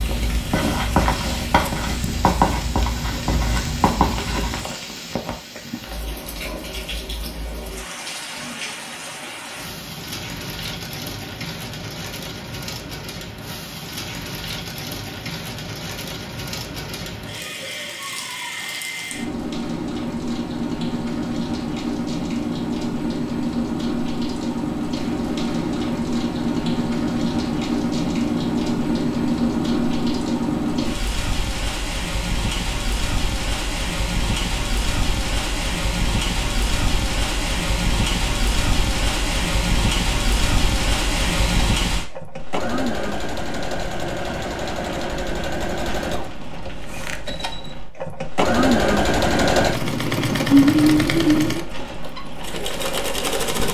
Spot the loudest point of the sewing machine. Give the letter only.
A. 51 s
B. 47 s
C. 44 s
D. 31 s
A.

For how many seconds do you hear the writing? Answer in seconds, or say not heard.
5 s.